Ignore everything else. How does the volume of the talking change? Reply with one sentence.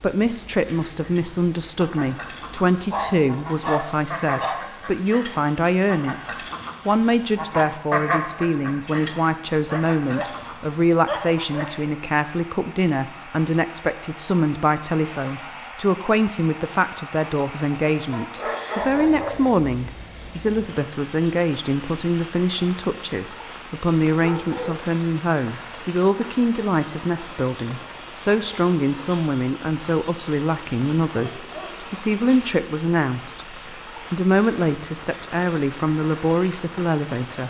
The loudness of the talking stays about the same.